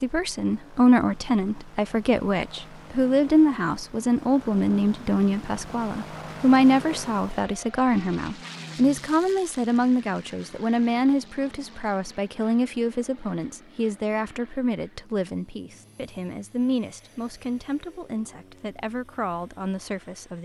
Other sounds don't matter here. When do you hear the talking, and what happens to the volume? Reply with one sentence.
You can hear the talking from 0.0 to 20.4 s, getting quieter.